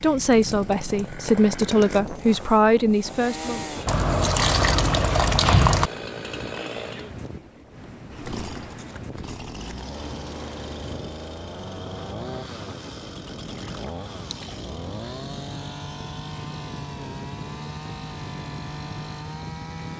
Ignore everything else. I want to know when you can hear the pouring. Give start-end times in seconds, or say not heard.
3.9-5.9, 13.5-14.7.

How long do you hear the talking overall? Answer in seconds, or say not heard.
4 s.